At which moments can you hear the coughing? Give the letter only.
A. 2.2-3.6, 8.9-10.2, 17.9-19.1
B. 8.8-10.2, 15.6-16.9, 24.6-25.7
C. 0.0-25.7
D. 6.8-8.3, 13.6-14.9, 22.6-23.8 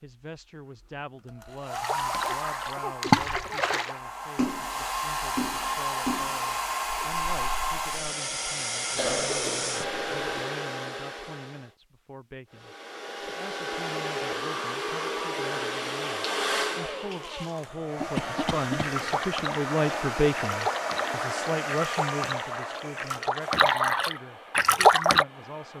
A.